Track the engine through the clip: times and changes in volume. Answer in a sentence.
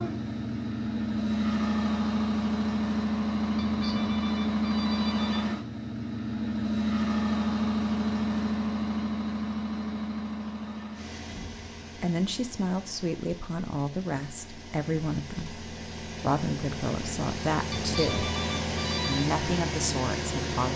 You can hear the engine from 0.0 to 20.7 s, getting quieter then louder.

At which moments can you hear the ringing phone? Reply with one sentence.
The ringing phone can be heard from 3.5 to 5.5 s and from 17.7 to 19.2 s.